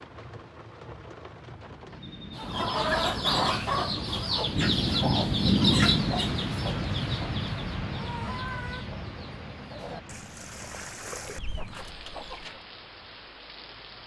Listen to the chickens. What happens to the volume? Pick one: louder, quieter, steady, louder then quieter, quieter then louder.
quieter.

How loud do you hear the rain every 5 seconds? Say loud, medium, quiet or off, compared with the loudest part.
medium, loud, quiet.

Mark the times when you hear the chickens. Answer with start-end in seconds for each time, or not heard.
2.4-12.6.